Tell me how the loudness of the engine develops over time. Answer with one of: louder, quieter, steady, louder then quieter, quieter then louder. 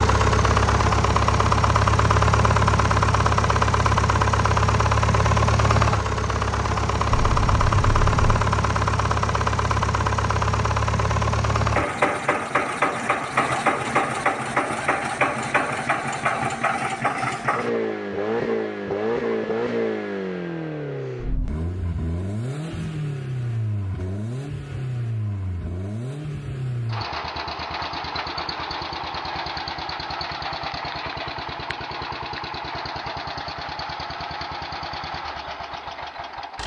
quieter.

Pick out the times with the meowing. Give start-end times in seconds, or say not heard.
7.1-8.4.